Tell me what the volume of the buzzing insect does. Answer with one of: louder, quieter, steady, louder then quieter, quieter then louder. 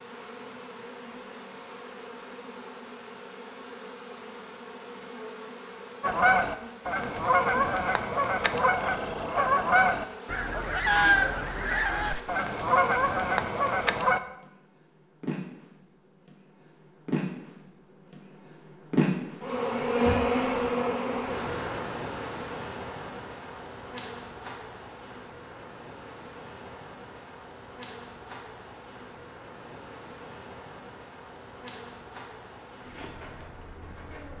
louder then quieter.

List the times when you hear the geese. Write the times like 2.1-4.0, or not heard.
6.0-14.2.